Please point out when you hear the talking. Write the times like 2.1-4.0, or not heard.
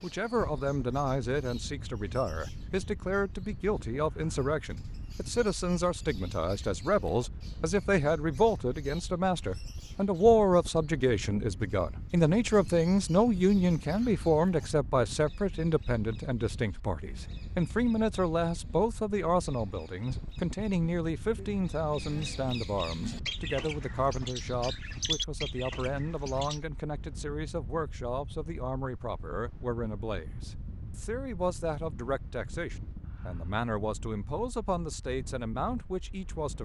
0.0-36.5.